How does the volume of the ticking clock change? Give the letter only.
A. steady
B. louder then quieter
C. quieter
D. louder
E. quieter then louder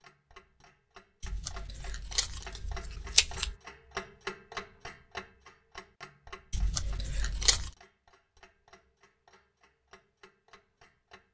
B.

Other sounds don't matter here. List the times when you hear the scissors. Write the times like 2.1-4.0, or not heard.
1.2-3.5, 6.5-7.7.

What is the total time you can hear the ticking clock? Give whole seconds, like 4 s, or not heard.
11 s.